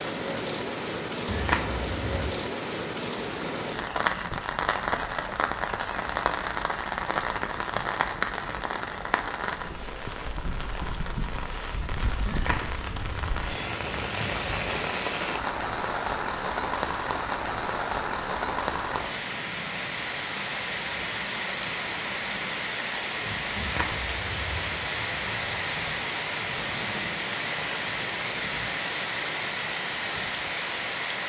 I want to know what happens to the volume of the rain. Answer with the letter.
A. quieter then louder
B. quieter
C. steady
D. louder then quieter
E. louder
C.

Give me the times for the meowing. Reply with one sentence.
The meowing can be heard from 1.2 to 2.4 s, from 12.2 to 14.8 s and from 23.6 to 26.1 s.